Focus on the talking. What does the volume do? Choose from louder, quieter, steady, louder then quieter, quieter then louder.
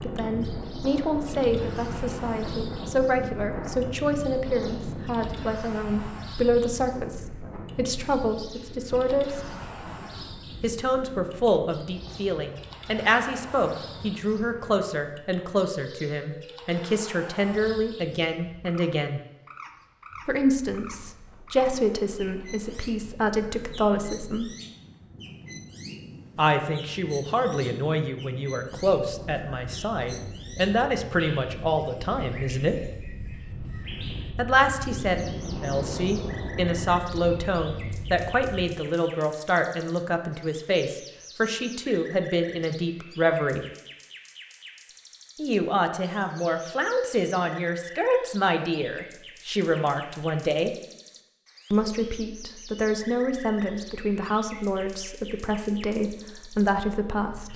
steady.